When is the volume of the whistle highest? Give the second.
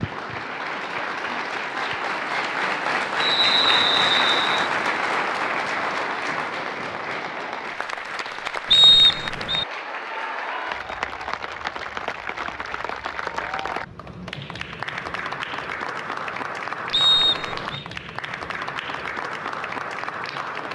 9 s.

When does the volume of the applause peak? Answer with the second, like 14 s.
4 s.